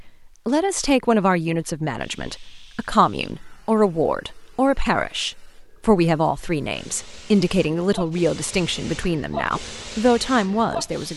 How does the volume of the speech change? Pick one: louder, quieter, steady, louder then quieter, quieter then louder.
steady.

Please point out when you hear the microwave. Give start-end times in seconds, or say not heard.
not heard.